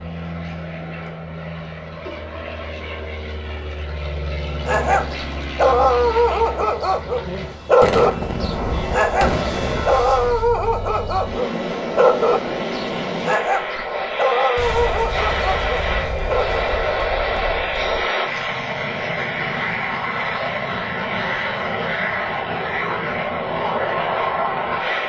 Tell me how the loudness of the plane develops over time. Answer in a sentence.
The loudness of the plane goes up.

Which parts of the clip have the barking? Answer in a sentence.
You can hear the barking from 4.7 to 16.6 s.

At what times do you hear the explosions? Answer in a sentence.
You can hear the explosions from 7.8 to 9.8 s and from 14.6 to 18.1 s.